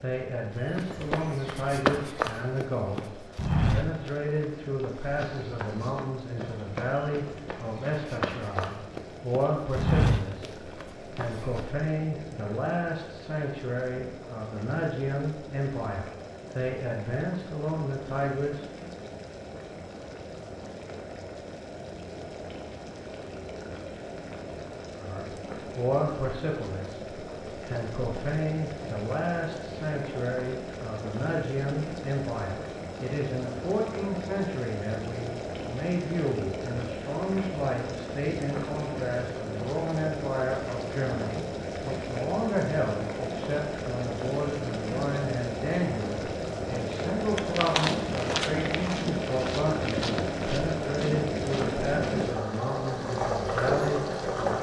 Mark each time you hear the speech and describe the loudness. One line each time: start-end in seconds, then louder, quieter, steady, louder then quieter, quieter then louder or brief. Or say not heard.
0.0-18.6 steady
24.9-54.5 steady.